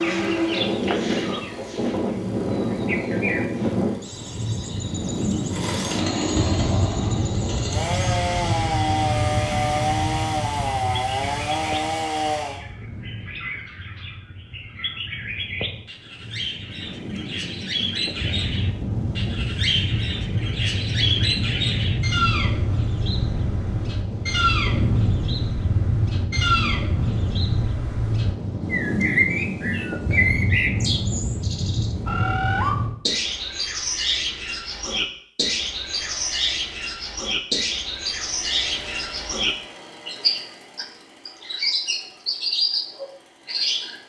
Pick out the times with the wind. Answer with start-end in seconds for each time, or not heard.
0.0-33.0.